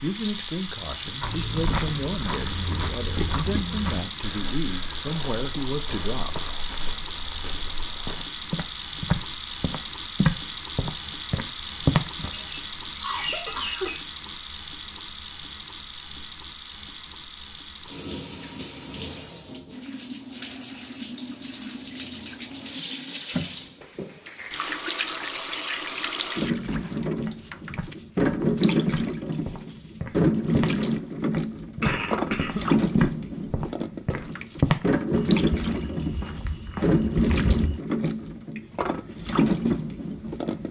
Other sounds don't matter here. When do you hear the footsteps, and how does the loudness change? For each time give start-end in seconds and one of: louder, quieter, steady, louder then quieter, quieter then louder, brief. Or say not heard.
1.2-12.3 quieter then louder
27.2-37.8 louder then quieter.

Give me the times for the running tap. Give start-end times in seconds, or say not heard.
0.0-40.6.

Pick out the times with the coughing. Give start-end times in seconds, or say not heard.
12.2-14.1, 31.8-32.8.